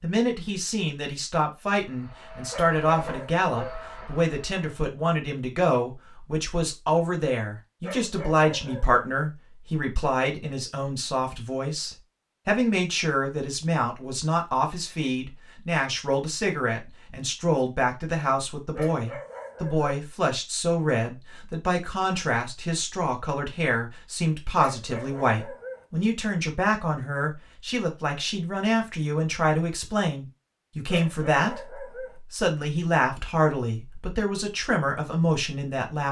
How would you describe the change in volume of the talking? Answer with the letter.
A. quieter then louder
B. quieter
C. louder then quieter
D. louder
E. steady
E.